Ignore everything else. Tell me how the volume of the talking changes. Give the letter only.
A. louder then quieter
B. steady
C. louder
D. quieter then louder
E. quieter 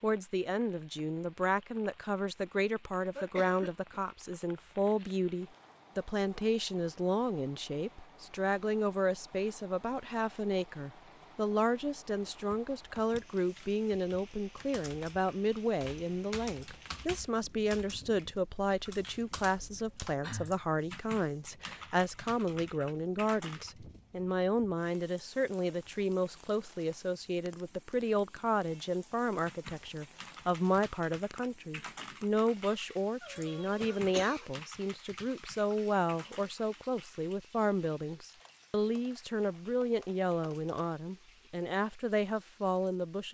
B.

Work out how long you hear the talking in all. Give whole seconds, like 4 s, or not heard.
43 s.